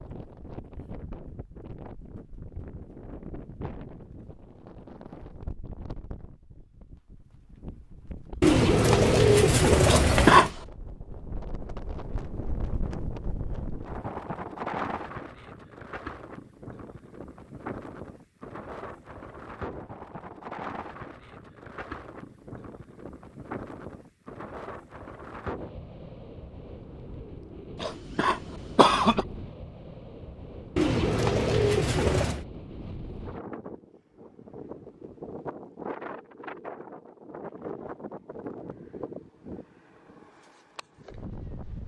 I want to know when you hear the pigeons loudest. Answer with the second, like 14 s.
9 s.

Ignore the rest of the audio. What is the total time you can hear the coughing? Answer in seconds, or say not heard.
2 s.